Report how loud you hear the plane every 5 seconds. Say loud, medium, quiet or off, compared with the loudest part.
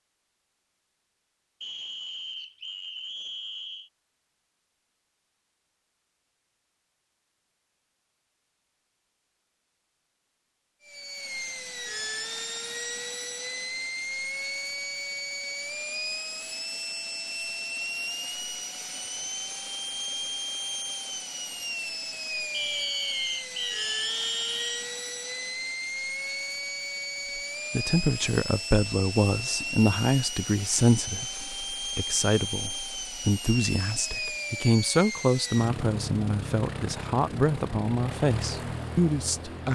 off, off, loud, loud, loud, loud, loud, loud.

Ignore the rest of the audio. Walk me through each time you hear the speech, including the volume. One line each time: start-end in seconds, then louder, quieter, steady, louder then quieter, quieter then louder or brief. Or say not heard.
27.7-39.7 steady.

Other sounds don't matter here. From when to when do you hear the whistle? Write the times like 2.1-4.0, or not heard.
1.6-3.9, 22.5-24.6.